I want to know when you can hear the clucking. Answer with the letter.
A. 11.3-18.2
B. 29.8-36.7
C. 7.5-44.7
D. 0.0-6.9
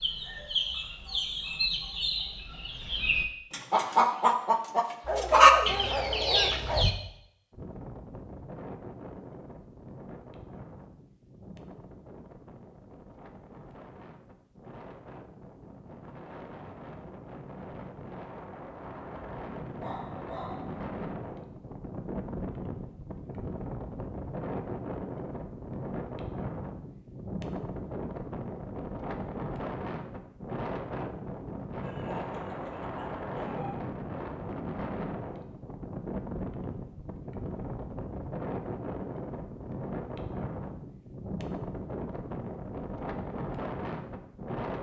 D.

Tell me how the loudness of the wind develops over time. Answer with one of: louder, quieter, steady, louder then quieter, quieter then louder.
louder.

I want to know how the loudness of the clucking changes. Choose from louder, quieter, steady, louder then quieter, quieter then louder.
louder.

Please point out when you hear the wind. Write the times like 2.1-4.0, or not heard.
7.5-44.7.